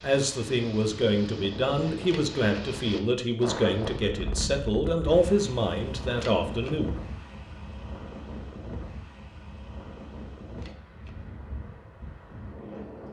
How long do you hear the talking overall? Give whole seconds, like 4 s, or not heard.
7 s.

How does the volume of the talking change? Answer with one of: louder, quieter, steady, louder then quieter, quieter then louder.
steady.